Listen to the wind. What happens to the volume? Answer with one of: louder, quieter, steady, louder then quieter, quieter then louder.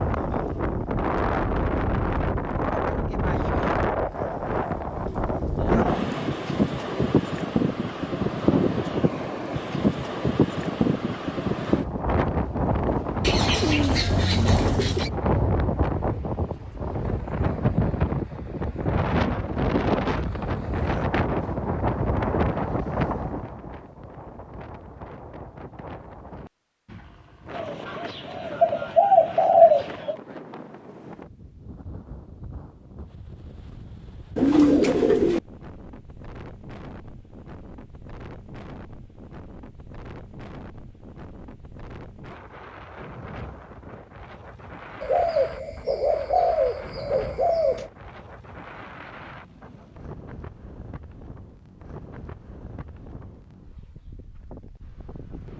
quieter.